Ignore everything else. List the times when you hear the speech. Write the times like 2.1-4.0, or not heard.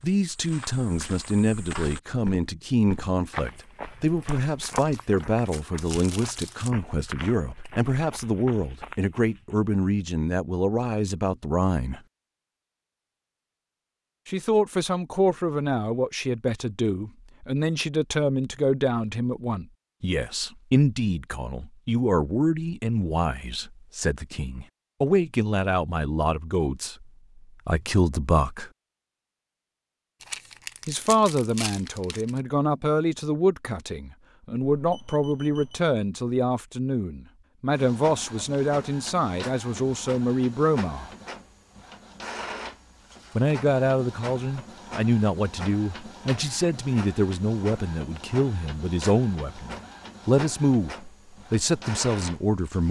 0.0-12.0, 14.2-28.7, 30.9-41.1, 43.4-52.8.